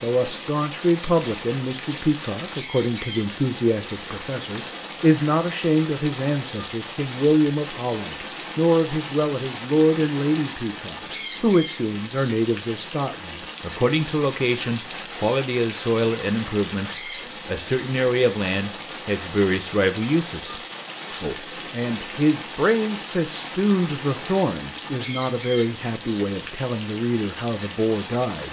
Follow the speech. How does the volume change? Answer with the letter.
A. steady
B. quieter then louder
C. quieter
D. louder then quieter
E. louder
A.